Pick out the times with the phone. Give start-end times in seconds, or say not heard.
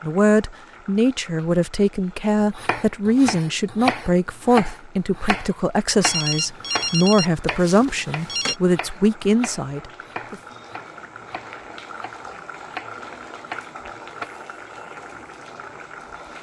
6.0-8.6.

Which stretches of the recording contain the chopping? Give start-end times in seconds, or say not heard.
2.4-14.3.